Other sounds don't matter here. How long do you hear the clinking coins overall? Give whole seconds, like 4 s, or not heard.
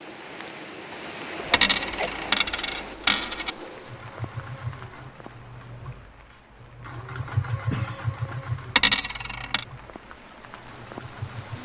3 s.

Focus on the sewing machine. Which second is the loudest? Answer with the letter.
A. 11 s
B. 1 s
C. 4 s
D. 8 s
D.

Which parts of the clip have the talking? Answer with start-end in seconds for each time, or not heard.
not heard.